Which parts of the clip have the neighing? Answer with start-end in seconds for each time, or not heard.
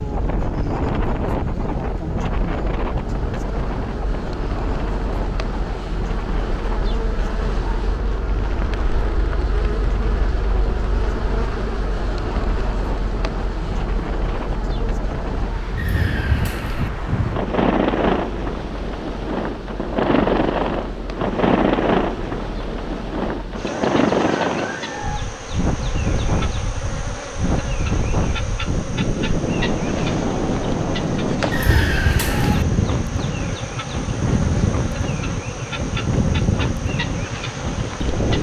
15.8-16.9, 31.5-32.6.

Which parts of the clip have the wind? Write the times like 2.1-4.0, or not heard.
0.0-38.3.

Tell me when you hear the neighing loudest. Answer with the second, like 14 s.
32 s.